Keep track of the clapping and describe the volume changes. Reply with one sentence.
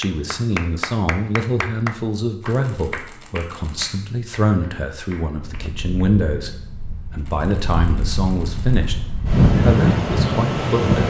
The loudness of the clapping goes down.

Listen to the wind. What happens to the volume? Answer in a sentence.
The volume of the wind goes up.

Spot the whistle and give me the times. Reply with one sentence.
You can't hear the whistle here.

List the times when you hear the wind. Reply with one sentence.
You can hear the wind from 5.3 to 11.0 s.